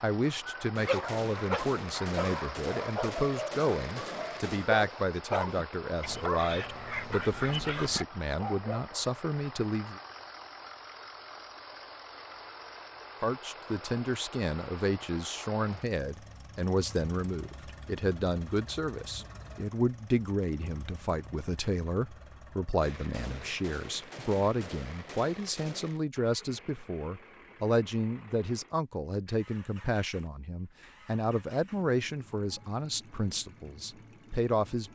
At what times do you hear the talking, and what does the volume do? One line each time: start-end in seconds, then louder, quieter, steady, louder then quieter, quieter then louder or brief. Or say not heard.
0.0-10.0 steady
13.2-34.9 steady.